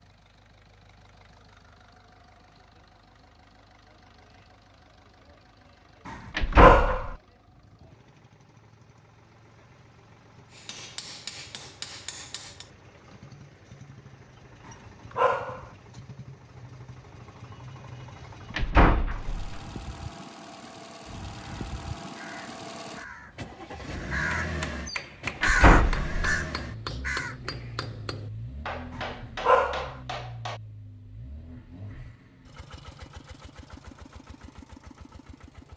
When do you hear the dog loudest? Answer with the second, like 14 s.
7 s.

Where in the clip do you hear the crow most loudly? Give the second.
26 s.